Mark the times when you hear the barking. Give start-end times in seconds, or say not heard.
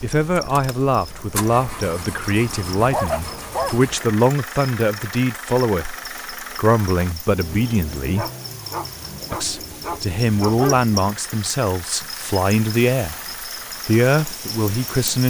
2.8-4.2, 8.2-10.8.